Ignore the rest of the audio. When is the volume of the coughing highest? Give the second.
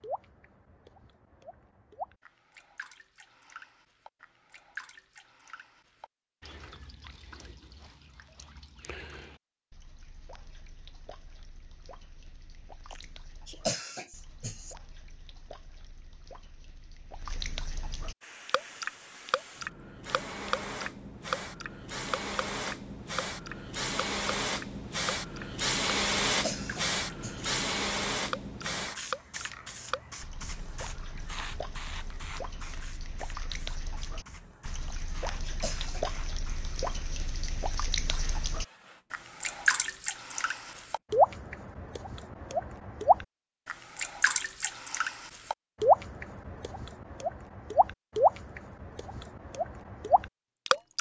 14 s.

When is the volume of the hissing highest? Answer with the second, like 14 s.
26 s.